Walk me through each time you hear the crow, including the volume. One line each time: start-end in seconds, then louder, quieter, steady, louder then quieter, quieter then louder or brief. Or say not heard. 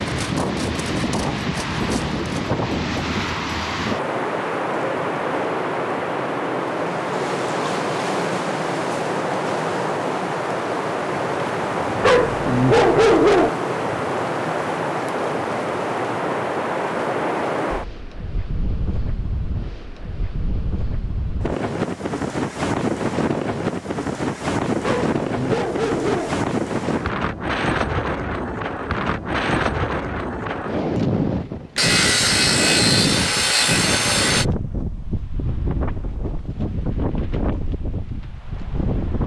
not heard.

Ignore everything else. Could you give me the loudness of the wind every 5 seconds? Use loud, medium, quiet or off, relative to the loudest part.
loud, loud, loud, loud, loud, loud, loud, medium.